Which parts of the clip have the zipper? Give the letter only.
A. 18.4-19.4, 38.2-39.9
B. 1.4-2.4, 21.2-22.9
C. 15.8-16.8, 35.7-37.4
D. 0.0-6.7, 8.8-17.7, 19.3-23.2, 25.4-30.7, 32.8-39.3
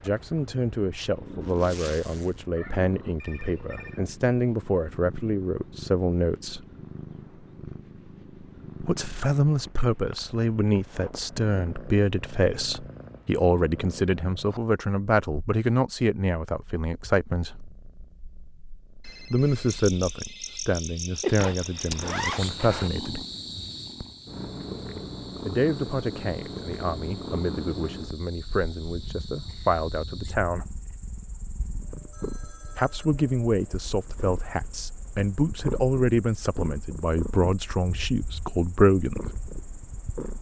B.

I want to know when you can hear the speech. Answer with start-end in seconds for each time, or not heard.
0.0-6.7, 8.8-17.7, 19.3-23.2, 25.4-30.7, 32.8-39.3.